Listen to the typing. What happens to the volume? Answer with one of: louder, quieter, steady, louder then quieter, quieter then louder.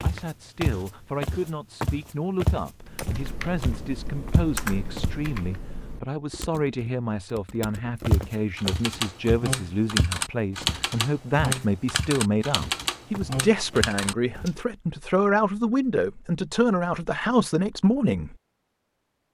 quieter then louder.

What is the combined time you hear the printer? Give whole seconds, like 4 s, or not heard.
not heard.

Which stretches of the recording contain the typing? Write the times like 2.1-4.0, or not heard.
2.8-14.6.